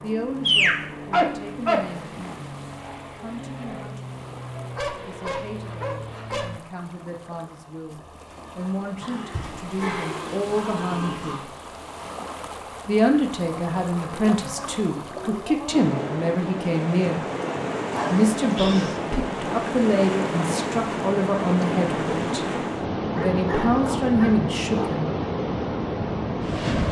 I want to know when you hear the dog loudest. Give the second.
1 s.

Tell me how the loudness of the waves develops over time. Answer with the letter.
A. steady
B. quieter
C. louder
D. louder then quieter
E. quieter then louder
C.